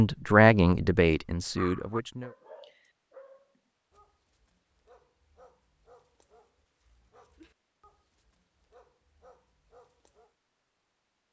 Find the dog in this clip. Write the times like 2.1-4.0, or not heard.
1.6-10.3.